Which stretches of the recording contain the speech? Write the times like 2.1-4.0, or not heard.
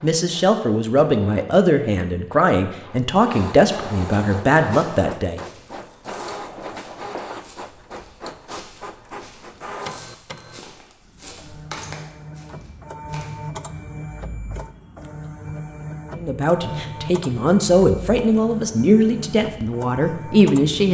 0.0-5.4, 16.1-20.8.